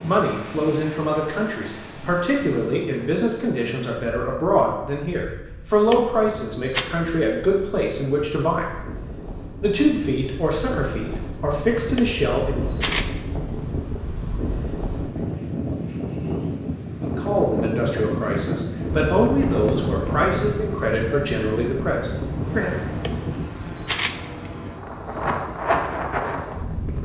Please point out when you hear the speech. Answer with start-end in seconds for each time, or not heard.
0.0-8.7, 9.6-12.7, 17.0-22.8.